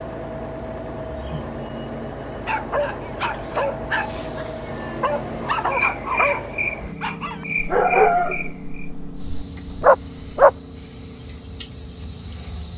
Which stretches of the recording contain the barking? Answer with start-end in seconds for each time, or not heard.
2.3-10.5.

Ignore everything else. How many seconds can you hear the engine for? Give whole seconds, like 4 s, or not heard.
13 s.